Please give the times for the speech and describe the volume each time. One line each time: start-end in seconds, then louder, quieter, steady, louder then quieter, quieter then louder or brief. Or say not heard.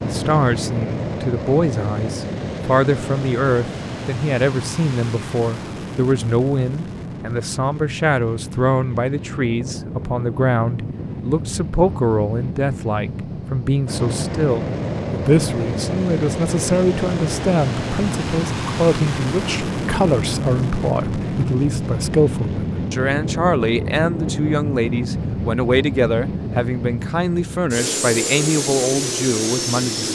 0.0-30.1 steady.